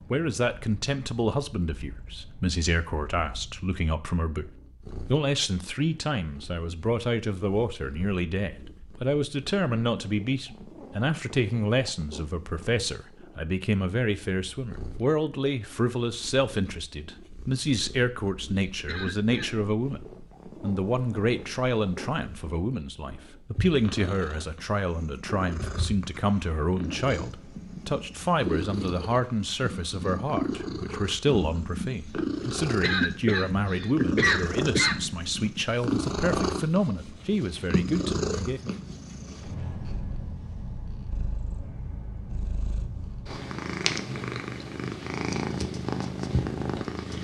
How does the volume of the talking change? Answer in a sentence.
The volume of the talking stays about the same.